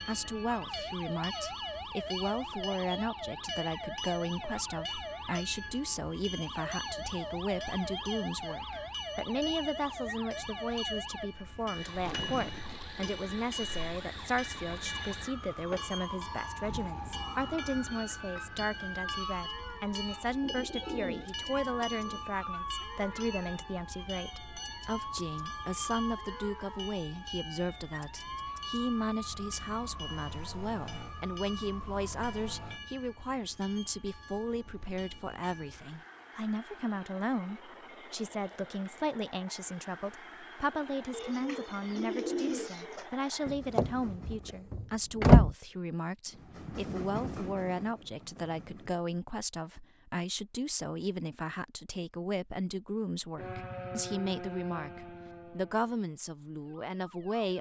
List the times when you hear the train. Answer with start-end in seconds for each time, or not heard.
0.0-44.7, 46.3-49.0.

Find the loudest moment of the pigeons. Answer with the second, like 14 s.
42 s.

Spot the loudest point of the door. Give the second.
45 s.